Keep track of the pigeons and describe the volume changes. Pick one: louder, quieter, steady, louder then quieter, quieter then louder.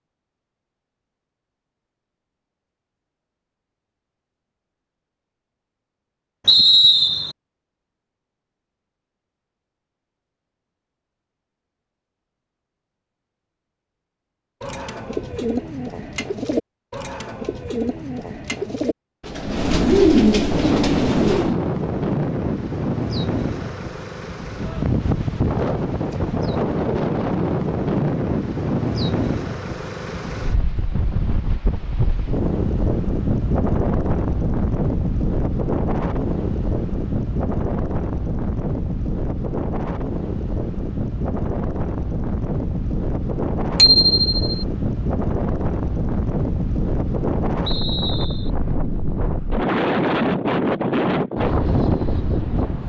louder.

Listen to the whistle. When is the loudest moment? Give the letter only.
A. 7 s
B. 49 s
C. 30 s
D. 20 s
A.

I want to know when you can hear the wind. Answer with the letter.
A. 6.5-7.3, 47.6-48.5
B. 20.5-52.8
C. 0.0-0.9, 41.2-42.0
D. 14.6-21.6
B.